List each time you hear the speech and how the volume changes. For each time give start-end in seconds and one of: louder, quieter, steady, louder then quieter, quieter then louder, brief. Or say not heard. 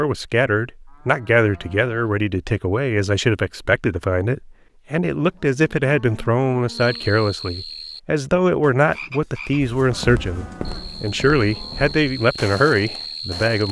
0.0-13.6 steady.